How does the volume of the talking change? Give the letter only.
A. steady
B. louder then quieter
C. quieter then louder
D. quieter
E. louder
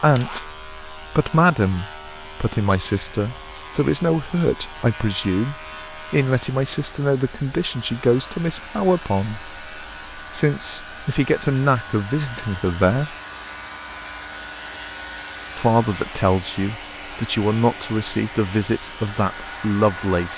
A.